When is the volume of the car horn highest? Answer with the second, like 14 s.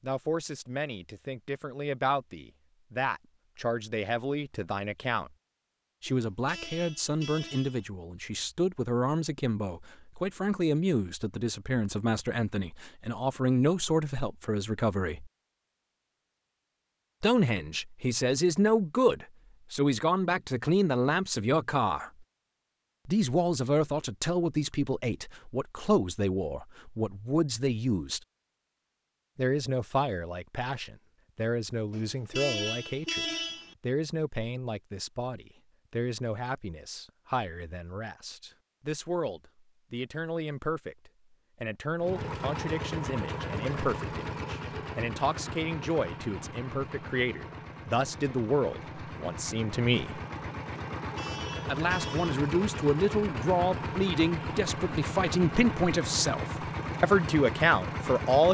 33 s.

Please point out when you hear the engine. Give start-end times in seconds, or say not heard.
42.0-58.4.